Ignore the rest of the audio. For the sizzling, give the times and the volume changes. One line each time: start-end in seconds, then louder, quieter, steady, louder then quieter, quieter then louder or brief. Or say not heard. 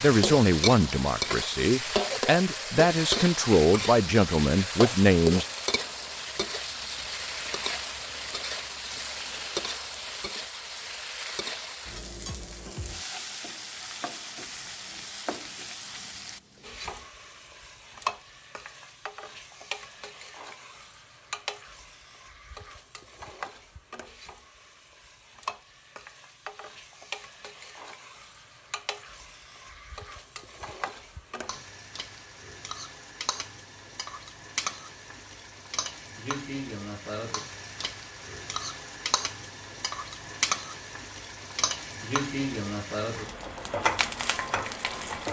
0.0-45.2 quieter then louder.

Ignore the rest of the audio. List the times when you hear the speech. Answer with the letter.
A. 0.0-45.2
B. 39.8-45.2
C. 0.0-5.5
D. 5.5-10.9
C.